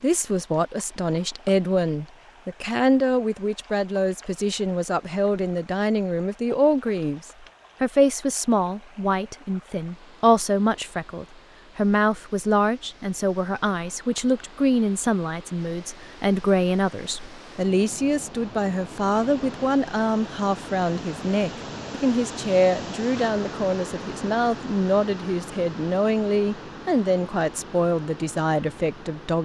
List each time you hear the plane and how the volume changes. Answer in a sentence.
You can't hear the plane here.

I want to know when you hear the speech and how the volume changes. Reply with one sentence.
The speech can be heard from 0.0 to 29.3 s, at a steady volume.